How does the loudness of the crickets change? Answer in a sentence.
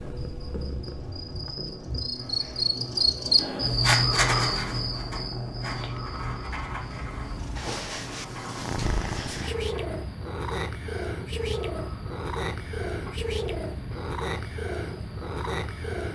The volume of the crickets goes down.